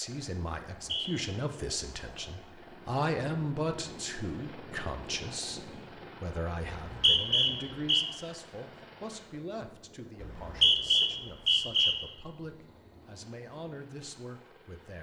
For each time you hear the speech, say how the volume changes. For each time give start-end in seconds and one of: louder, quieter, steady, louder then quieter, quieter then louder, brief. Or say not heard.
0.0-14.9 quieter.